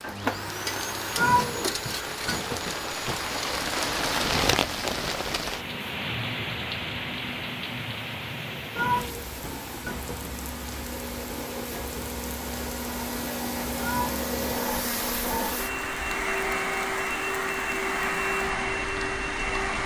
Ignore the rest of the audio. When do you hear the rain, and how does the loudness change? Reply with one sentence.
The rain can be heard from 0.0 to 19.8 s, getting quieter.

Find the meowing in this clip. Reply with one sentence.
The meowing can be heard from 1.1 to 3.1 s, from 8.8 to 10.3 s and from 13.8 to 14.6 s.